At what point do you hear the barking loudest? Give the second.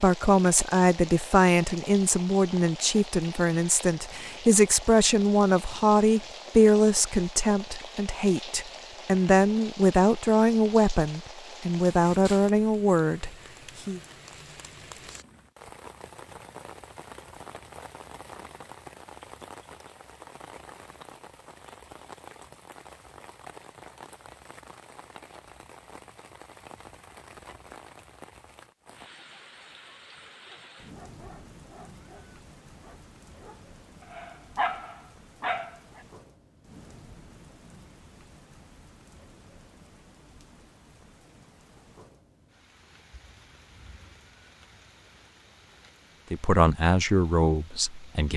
35 s.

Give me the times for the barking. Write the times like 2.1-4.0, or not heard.
30.2-36.0.